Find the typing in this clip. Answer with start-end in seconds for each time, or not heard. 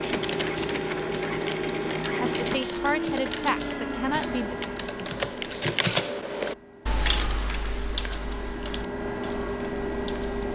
0.0-10.5.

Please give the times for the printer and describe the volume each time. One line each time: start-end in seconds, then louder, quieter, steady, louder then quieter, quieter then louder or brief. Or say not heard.
0.0-10.5 quieter then louder.